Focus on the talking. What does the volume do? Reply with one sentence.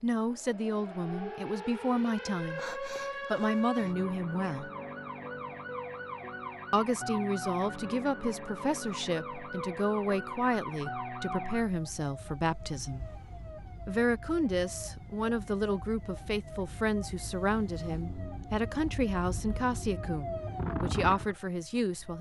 The volume of the talking stays about the same.